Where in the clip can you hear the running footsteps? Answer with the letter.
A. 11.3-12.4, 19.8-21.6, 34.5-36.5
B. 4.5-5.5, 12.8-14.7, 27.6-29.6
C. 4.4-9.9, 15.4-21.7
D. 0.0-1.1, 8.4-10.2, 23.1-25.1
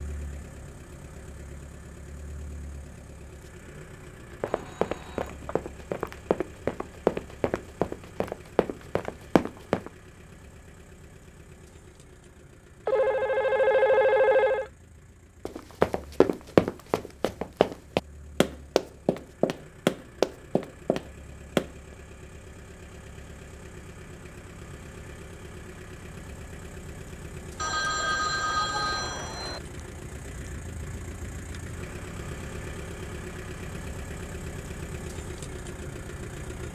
C.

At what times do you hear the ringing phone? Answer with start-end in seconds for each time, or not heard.
4.5-5.5, 12.8-14.7, 27.6-29.6.